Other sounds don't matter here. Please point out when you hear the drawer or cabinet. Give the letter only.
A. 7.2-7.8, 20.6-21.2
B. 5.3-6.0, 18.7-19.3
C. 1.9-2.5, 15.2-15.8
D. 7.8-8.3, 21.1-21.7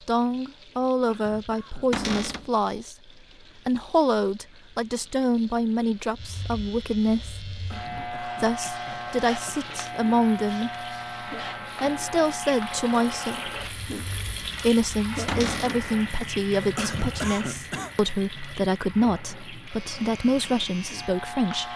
C.